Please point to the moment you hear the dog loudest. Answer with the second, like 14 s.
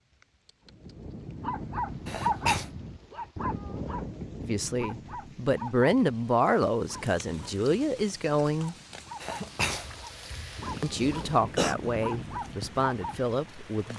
2 s.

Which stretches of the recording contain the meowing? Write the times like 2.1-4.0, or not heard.
not heard.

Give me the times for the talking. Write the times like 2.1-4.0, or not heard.
4.4-8.8, 10.8-13.9.